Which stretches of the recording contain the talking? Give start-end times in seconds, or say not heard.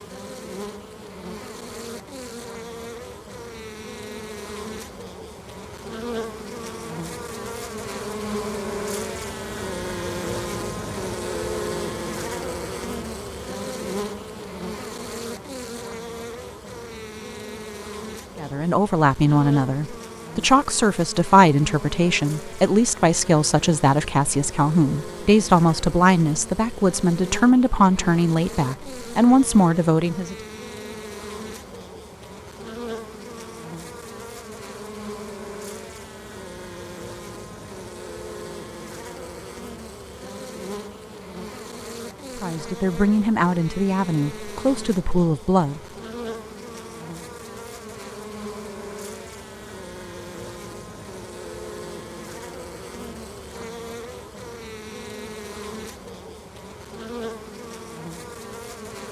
18.4-30.4, 42.4-45.8.